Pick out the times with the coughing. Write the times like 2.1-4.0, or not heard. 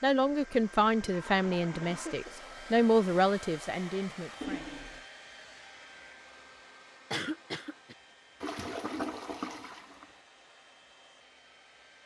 1.1-2.4, 7.1-8.0.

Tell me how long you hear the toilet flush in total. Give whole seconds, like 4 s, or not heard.
4 s.